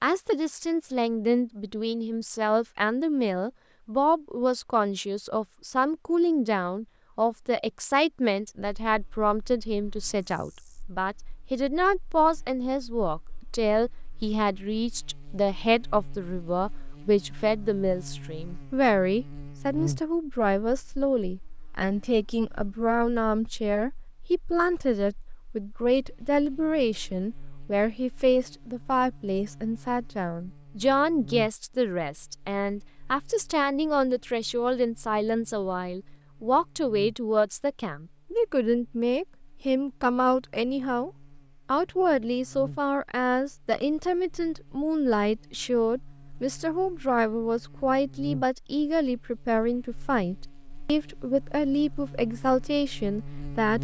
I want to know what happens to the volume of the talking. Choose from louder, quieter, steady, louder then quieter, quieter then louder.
steady.